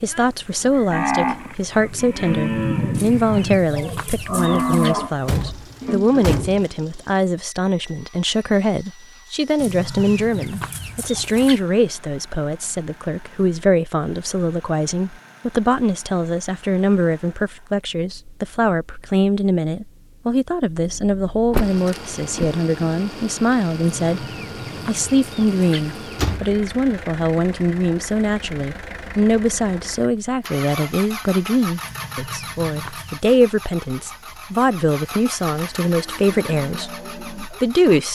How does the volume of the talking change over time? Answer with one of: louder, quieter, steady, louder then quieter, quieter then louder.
steady.